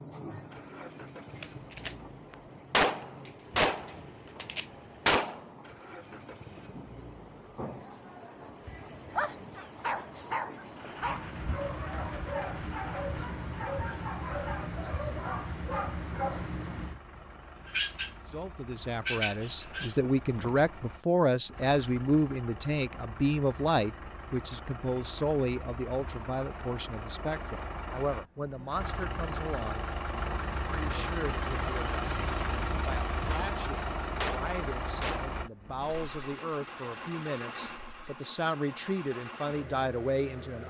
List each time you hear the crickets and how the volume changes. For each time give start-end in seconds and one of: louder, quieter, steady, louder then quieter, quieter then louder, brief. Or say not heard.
0.0-21.0 louder.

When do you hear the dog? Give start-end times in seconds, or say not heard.
9.1-16.5.